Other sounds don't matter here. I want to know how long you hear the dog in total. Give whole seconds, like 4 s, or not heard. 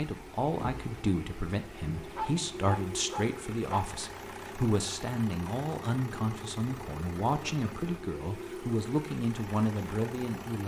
2 s.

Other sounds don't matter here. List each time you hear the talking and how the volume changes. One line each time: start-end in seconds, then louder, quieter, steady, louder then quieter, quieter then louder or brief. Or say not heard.
0.0-10.6 steady.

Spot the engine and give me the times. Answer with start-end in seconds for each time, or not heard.
0.0-10.6.